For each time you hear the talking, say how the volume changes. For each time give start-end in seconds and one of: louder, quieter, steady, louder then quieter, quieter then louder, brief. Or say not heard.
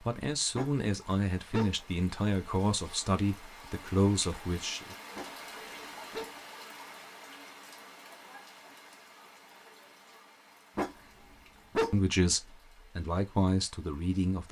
0.0-5.0 steady
11.9-14.4 brief.